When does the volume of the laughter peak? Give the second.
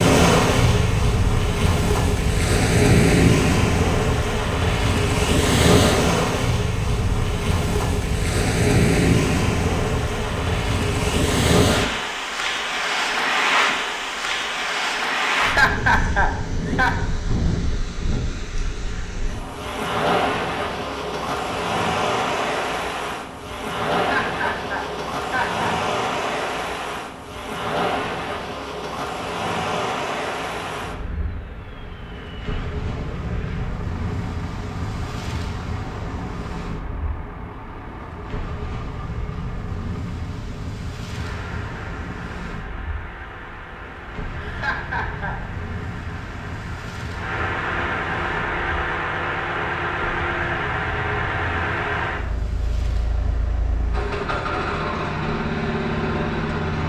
16 s.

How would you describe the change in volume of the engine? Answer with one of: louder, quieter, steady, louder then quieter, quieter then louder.
louder.